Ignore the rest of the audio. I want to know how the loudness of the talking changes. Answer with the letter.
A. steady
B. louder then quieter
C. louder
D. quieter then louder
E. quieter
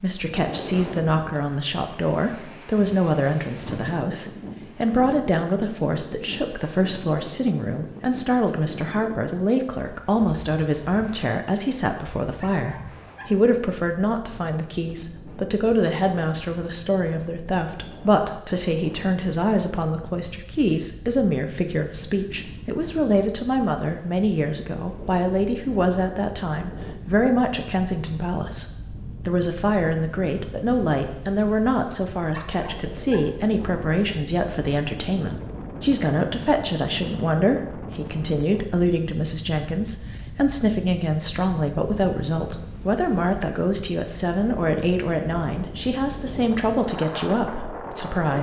A.